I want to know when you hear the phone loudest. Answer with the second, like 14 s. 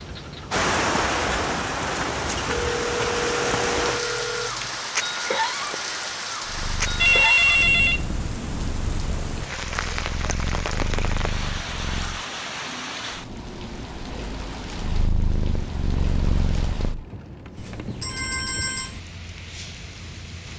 7 s.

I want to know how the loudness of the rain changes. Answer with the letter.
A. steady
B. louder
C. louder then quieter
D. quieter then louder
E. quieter
E.